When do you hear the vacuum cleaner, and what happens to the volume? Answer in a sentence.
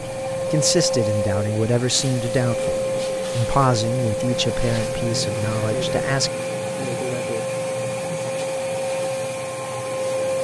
The vacuum cleaner can be heard from 0.0 to 10.4 s, at a steady volume.